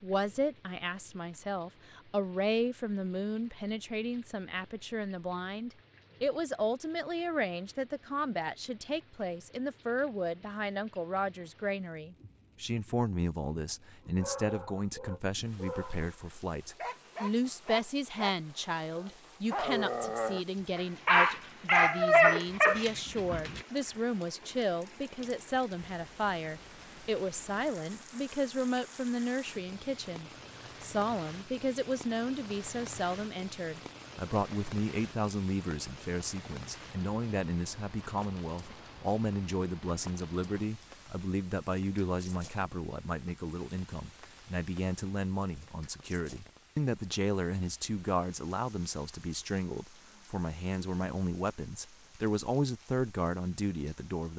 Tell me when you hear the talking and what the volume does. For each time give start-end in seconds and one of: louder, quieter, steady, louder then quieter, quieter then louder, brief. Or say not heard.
0.0-54.3 steady.